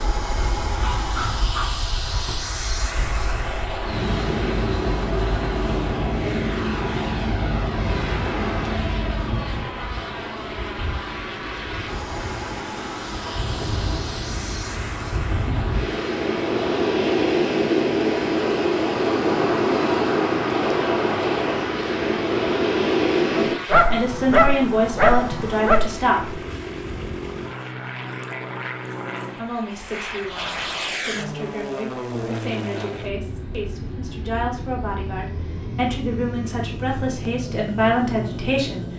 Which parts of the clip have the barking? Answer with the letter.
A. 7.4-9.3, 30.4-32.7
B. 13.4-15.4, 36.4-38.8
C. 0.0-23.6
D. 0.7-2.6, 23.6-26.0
D.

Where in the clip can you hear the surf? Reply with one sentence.
You can hear the surf from 0.0 to 23.6 s.